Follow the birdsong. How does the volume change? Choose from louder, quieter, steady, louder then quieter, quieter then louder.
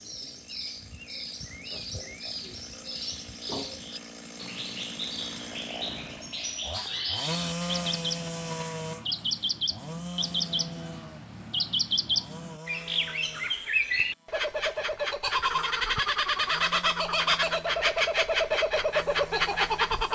louder.